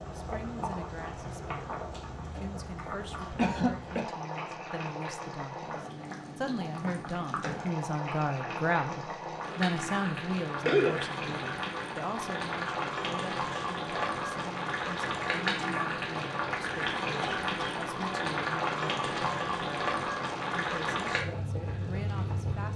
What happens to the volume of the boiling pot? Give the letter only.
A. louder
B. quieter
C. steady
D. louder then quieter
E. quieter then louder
A.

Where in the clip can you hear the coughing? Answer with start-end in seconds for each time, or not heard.
3.4-4.0, 10.7-11.3, 17.2-18.1.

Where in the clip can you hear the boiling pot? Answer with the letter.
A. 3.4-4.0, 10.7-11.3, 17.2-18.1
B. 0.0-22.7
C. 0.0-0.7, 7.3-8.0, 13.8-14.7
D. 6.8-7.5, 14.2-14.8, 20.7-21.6
B.